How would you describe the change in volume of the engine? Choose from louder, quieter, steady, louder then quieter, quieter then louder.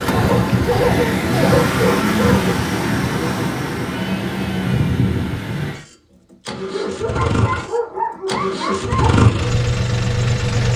quieter then louder.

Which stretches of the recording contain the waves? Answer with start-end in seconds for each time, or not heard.
0.0-5.8.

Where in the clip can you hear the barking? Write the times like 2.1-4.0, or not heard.
1.4-2.5, 6.7-9.2.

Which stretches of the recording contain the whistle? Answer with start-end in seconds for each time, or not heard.
not heard.